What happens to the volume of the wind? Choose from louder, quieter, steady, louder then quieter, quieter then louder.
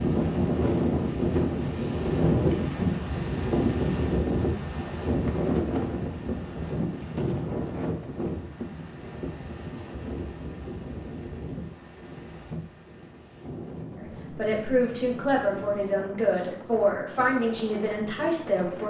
quieter.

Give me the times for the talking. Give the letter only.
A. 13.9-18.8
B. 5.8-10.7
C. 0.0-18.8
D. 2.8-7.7
A.